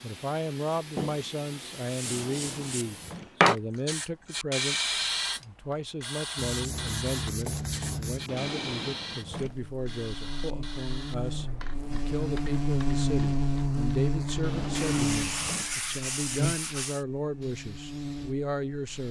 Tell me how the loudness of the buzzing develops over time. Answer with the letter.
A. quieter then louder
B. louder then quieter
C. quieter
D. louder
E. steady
B.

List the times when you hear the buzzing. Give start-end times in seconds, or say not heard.
9.4-19.0.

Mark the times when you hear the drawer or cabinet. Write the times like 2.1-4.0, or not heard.
2.0-3.4, 8.2-9.6, 14.4-15.8.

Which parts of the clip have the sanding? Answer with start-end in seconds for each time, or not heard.
0.9-2.9, 6.3-8.3, 14.8-17.1.